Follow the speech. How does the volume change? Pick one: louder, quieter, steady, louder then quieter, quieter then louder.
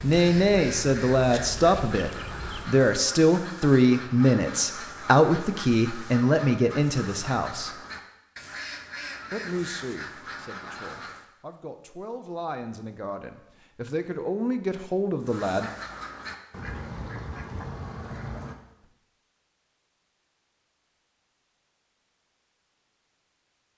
quieter then louder.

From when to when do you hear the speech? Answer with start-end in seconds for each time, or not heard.
0.0-7.8, 9.3-15.7.